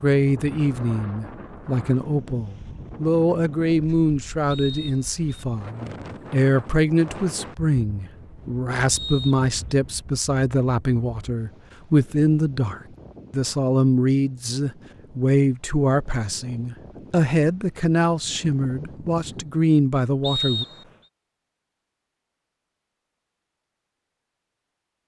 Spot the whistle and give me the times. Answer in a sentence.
You can hear the whistle from 4.5 to 5.5 s, from 8.9 to 9.4 s and from 20.2 to 20.9 s.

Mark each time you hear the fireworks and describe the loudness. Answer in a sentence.
You can't hear the fireworks here.